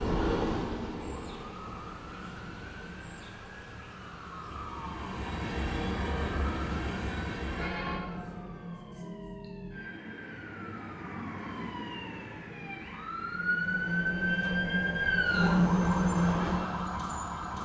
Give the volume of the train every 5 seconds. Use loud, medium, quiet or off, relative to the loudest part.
medium, medium, medium, loud.